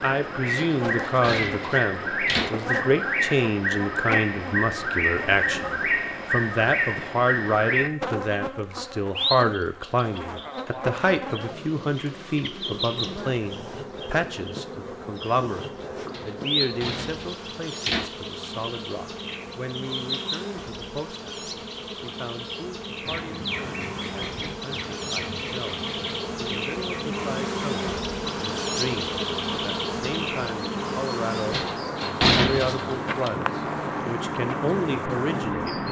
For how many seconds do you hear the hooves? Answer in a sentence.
The hooves can't be heard in this clip.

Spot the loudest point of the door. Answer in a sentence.
The loudest moment of the door is at 32 seconds.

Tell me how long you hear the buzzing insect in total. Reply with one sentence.
You can hear the buzzing insect for 36 seconds altogether.